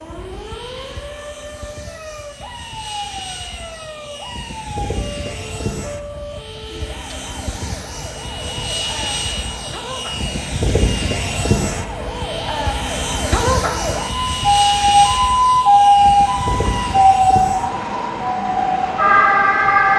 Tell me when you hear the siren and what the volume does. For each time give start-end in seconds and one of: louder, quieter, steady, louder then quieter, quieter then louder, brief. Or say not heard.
0.0-19.9 louder.